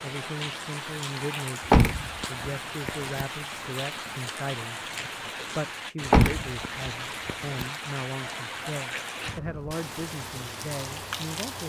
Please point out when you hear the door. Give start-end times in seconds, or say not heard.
1.6-3.2, 6.0-7.7.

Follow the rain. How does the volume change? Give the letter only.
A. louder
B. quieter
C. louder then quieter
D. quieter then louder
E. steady
E.